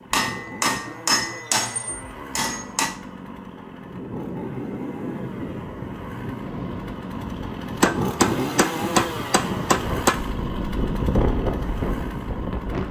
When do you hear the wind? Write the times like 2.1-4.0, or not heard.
3.8-12.8.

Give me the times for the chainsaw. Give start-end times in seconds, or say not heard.
0.0-12.8.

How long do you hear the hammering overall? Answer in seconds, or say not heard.
5 s.